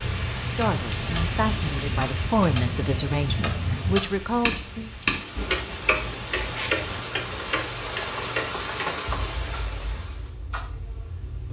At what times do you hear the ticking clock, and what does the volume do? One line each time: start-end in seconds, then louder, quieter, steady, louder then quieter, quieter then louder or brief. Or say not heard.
0.0-11.4 louder then quieter.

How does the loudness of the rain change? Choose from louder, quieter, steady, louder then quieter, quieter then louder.
quieter then louder.